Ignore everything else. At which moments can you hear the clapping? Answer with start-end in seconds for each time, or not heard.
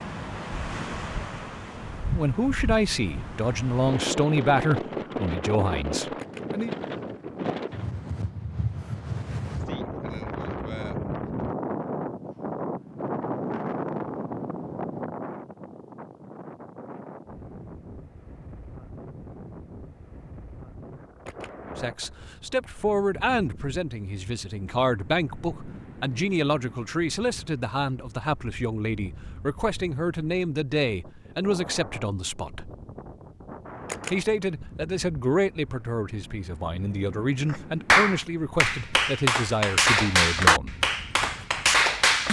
37.5-42.2.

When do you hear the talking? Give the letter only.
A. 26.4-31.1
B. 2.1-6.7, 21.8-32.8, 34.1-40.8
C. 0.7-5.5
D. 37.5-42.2
B.